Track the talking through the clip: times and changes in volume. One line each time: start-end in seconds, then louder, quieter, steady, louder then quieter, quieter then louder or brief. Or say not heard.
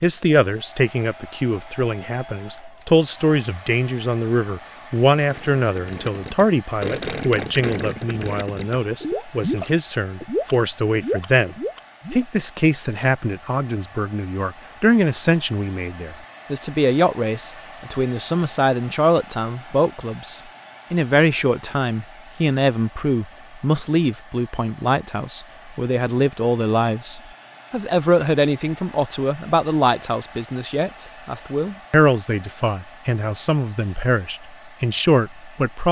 0.0-35.8 steady.